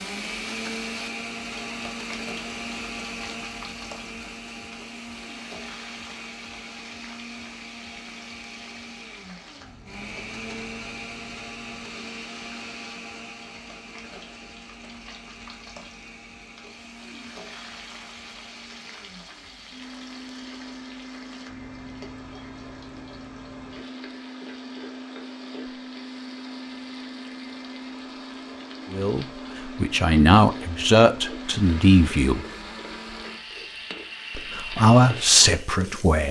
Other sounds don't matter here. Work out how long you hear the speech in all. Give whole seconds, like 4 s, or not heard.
5 s.